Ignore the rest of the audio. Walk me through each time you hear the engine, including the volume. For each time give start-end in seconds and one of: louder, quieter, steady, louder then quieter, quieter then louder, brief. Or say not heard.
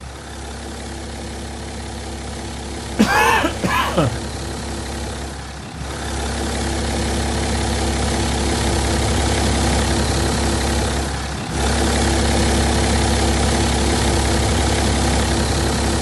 0.0-15.9 louder.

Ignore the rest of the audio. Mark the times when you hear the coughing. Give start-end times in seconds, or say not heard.
3.0-4.2.